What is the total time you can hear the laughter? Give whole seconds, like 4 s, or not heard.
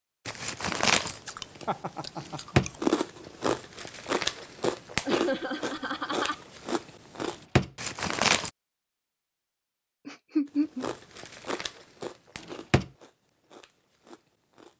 3 s.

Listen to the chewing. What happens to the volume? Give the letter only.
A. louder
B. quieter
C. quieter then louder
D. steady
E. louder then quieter
B.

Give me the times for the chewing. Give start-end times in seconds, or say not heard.
0.2-8.5, 10.4-14.7.